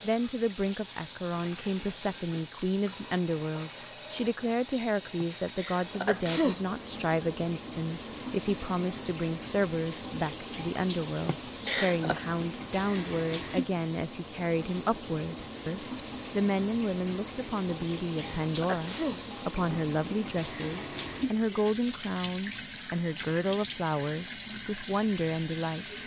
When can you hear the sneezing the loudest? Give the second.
6 s.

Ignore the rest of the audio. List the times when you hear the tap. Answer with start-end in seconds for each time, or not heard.
0.0-26.0.